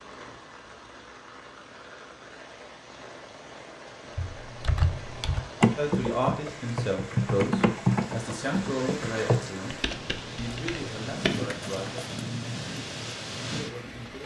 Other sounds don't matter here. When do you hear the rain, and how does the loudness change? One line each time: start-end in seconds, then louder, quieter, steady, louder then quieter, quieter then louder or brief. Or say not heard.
0.0-14.2 louder.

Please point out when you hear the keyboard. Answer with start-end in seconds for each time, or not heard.
4.2-11.9.